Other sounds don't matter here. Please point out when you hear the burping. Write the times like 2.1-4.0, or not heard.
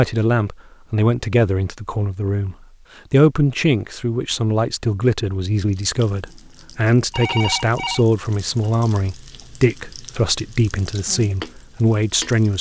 not heard.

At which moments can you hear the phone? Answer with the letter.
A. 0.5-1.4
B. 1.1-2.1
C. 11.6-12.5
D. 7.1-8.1
D.